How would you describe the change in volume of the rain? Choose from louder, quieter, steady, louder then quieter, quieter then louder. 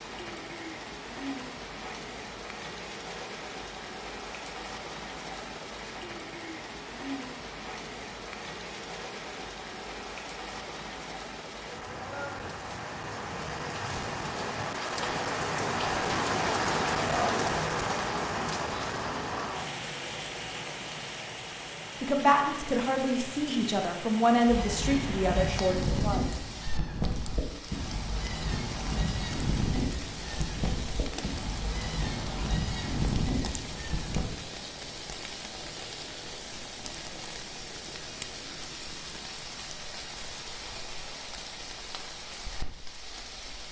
louder then quieter.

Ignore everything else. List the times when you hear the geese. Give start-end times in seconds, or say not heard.
24.4-34.3.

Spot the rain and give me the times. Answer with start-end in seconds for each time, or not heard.
0.0-43.6.